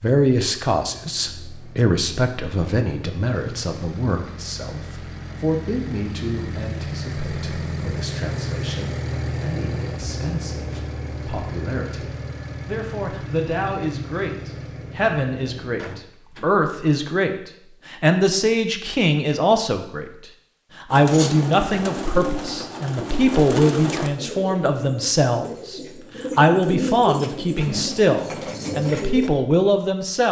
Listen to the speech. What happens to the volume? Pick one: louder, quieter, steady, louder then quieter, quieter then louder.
quieter then louder.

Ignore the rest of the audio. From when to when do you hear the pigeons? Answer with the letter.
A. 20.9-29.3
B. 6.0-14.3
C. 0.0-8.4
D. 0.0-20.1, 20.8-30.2
A.